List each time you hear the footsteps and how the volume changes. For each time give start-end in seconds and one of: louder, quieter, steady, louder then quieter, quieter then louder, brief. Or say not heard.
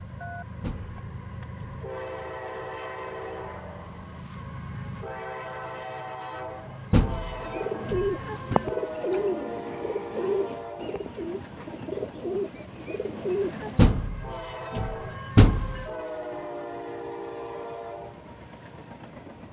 not heard.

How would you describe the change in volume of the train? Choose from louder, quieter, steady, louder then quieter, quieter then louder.
steady.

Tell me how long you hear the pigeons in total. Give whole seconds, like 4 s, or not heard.
6 s.